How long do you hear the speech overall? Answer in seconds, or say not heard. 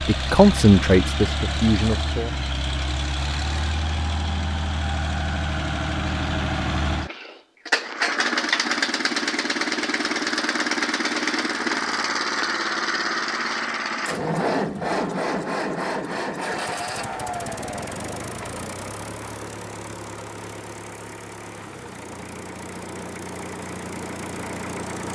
2 s.